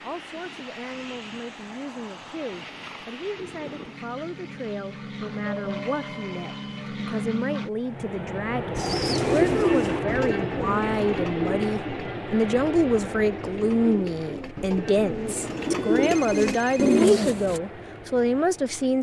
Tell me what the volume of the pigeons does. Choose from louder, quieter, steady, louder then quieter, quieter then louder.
quieter then louder.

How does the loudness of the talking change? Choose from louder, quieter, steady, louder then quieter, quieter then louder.
louder.